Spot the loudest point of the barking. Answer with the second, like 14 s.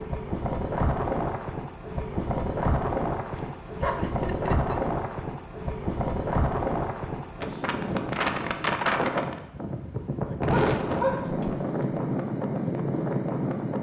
11 s.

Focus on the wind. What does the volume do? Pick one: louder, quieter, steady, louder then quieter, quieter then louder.
steady.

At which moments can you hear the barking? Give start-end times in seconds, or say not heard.
3.4-4.2, 10.4-11.7.